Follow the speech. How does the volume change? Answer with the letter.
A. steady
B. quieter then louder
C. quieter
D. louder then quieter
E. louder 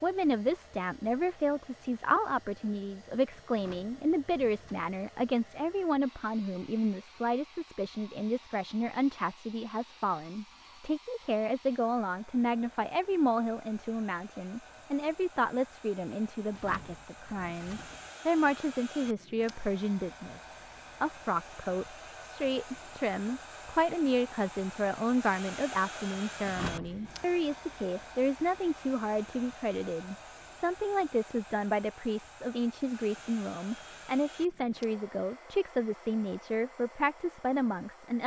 A.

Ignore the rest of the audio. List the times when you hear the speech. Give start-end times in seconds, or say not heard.
0.0-38.2.